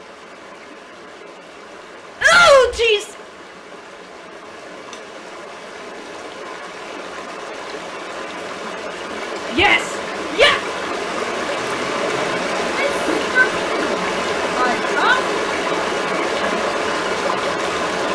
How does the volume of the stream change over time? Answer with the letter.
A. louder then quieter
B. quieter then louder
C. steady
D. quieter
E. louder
E.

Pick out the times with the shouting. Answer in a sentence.
You can hear the shouting from 2.2 to 3.1 s, from 9.5 to 10.6 s and from 12.6 to 15.2 s.